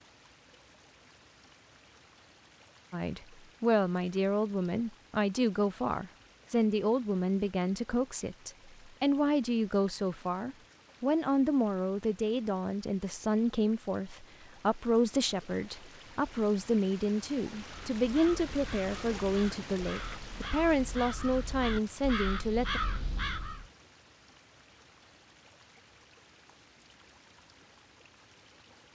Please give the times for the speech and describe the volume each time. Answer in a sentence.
The speech can be heard from 2.9 to 22.8 s, at a steady volume.